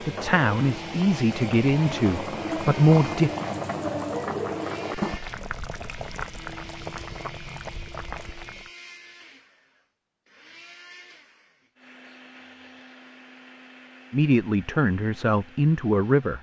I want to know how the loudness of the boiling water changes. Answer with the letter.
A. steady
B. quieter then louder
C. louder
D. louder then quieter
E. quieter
D.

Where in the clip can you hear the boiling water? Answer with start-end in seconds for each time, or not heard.
0.0-8.7.